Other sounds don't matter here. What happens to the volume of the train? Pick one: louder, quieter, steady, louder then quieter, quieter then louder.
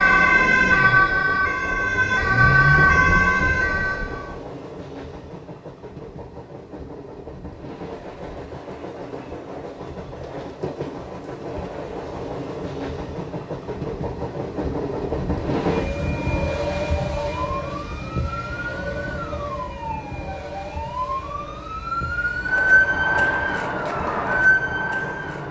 louder then quieter.